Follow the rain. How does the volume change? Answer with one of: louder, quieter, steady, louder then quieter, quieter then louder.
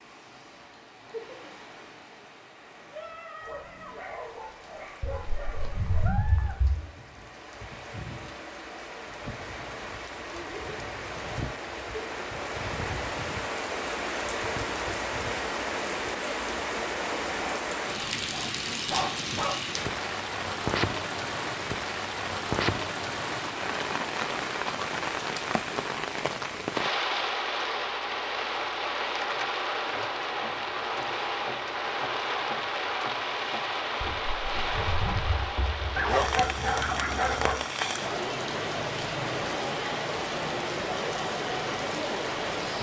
louder.